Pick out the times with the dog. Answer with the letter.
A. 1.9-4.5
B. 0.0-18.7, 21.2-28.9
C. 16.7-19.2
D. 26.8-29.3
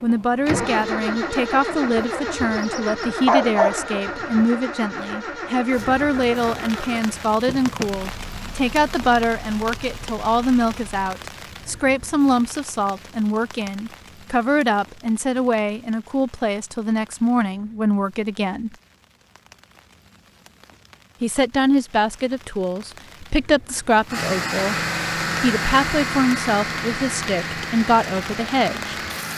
A.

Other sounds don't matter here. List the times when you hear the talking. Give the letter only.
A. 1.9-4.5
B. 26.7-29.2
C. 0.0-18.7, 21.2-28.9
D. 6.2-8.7
C.